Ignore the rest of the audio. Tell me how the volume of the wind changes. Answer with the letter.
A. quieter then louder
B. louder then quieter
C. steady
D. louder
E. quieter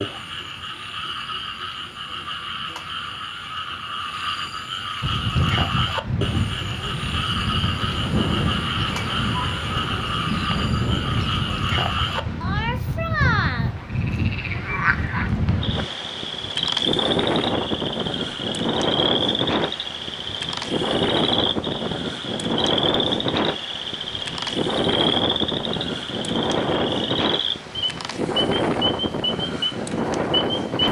C.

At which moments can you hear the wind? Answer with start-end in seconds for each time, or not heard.
5.0-30.8.